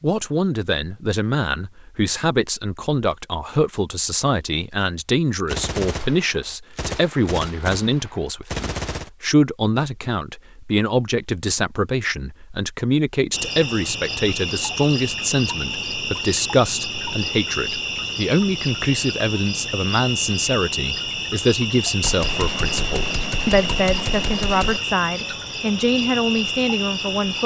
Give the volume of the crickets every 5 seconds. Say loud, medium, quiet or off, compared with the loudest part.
off, off, loud, loud, loud, loud.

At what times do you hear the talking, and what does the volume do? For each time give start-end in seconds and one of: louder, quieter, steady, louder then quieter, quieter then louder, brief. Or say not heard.
0.0-27.4 steady.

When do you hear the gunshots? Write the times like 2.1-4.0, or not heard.
5.5-9.1, 22.0-24.8.